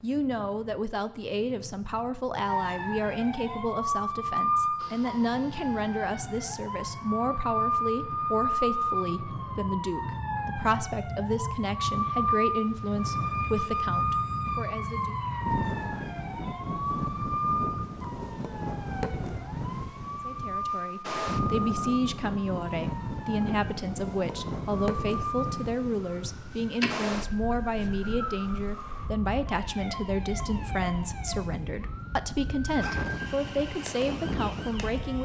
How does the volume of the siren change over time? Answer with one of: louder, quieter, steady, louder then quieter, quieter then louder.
quieter.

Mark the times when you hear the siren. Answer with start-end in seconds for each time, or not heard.
2.5-35.2.